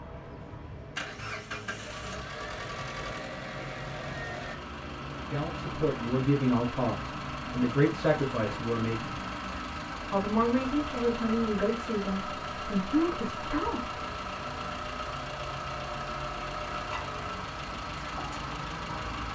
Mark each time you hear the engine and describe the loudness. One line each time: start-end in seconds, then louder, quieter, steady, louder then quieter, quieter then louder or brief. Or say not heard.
0.0-19.3 steady.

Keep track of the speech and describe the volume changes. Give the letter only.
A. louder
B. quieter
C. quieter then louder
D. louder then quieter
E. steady
E.